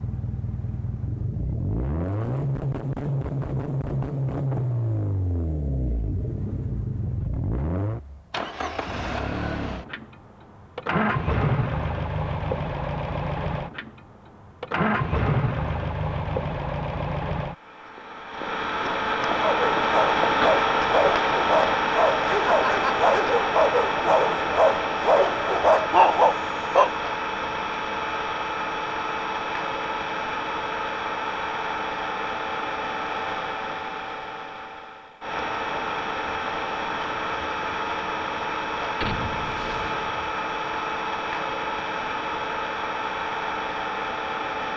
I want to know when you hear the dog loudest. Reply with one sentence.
The volume of the dog peaks at 26 seconds.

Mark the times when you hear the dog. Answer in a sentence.
You can hear the dog from 19.4 to 26.9 s.